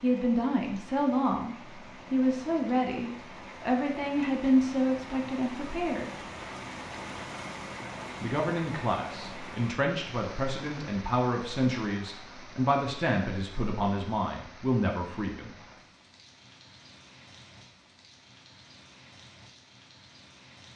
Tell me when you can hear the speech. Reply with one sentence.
You can hear the speech from 0.0 to 6.1 s and from 8.2 to 15.6 s.